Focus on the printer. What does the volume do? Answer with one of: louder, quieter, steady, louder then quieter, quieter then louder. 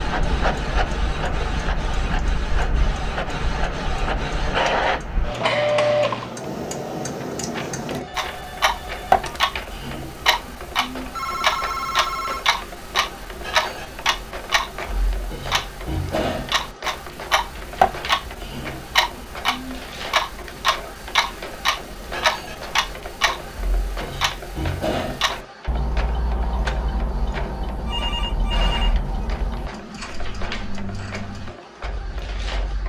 quieter.